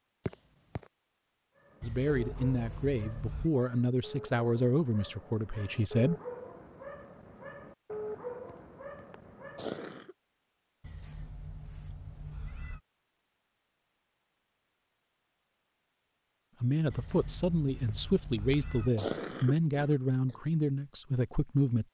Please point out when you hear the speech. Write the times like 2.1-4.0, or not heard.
1.8-6.2, 16.6-21.8.